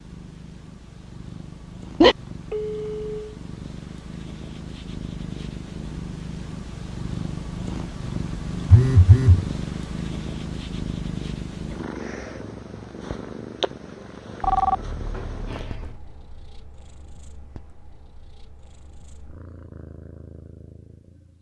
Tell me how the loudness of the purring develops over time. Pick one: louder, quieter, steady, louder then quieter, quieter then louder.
louder then quieter.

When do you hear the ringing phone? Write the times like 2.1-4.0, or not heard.
2.0-3.2, 8.7-9.4, 14.4-15.9.